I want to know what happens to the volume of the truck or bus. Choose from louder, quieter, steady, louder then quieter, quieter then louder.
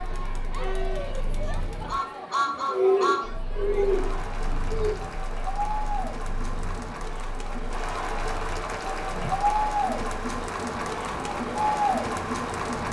quieter then louder.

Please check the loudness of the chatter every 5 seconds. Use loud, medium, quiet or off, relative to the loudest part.
medium, loud, loud.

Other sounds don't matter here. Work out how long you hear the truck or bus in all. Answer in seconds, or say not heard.
13 s.